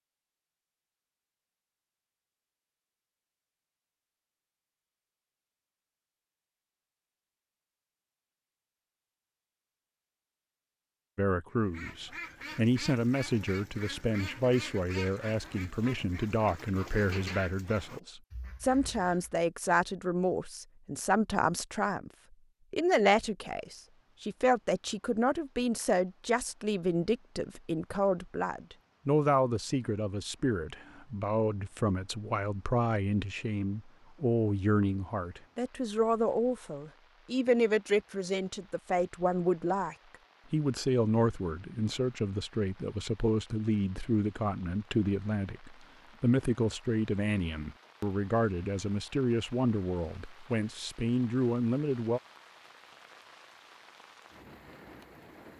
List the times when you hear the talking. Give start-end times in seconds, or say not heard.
11.2-22.1, 22.7-52.2.